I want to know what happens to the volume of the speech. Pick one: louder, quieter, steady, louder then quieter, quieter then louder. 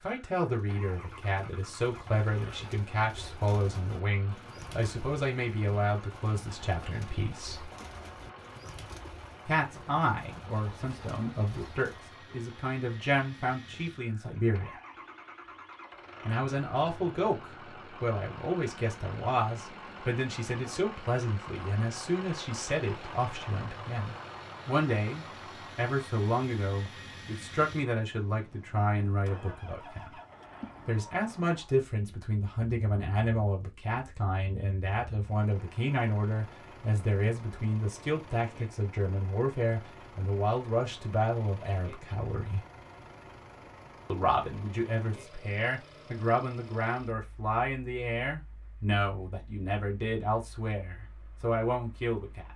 steady.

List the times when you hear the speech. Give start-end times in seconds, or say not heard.
0.0-7.7, 9.4-14.7, 16.2-30.1, 30.9-42.6, 44.0-52.5.